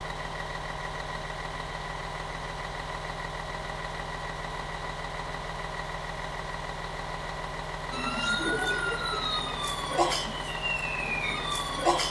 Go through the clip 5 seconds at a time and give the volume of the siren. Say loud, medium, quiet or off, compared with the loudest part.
off, loud, loud.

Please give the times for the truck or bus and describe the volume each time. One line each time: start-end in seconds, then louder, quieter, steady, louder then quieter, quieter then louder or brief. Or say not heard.
0.0-12.0 steady.